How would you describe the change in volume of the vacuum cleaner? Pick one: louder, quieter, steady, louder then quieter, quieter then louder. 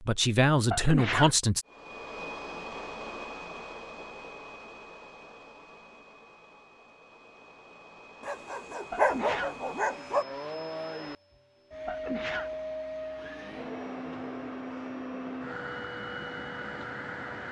quieter then louder.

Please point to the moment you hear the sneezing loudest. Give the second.
1 s.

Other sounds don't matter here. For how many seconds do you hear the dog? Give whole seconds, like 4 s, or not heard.
2 s.